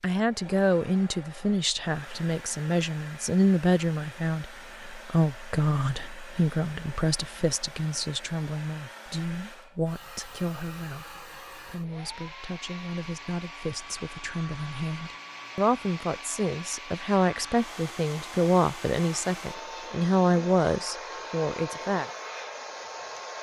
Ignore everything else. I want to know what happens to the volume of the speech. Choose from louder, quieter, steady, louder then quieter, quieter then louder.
quieter then louder.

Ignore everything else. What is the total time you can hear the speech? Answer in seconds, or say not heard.
22 s.